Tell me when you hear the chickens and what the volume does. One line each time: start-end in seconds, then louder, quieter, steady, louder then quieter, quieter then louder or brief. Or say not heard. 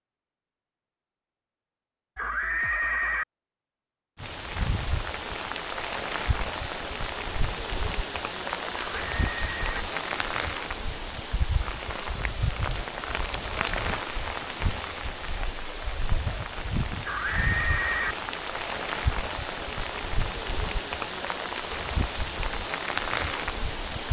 not heard.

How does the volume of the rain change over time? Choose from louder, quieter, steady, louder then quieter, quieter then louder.
steady.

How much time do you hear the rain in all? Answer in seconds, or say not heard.
20 s.